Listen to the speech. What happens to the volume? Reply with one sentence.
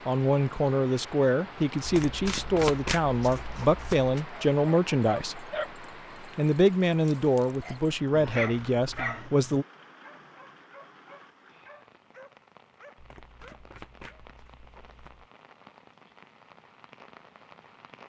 The volume of the speech stays about the same.